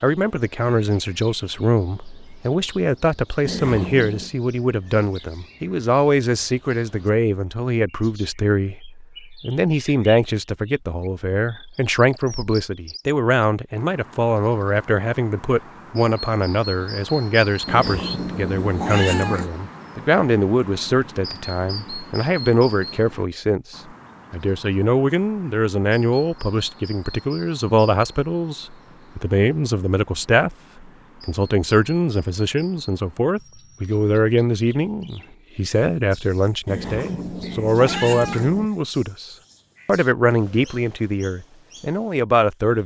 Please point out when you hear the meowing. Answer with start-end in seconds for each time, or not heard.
3.5-4.3, 17.6-19.5, 36.6-38.7.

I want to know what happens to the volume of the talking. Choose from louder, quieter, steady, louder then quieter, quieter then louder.
steady.